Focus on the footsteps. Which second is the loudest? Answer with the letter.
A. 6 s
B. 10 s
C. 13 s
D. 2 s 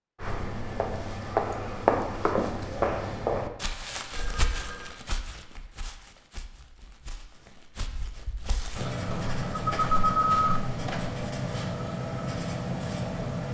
D.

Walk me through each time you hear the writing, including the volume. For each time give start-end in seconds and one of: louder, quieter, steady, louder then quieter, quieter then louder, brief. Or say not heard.
8.7-13.4 steady.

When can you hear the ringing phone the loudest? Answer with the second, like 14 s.
10 s.